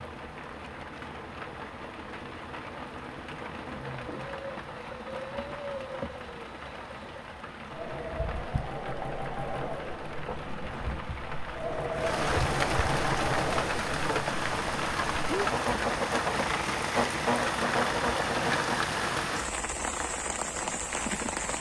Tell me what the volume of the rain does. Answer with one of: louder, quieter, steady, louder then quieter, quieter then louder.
louder.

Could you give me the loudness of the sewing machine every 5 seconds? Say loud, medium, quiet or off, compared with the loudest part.
quiet, medium, loud, loud, off.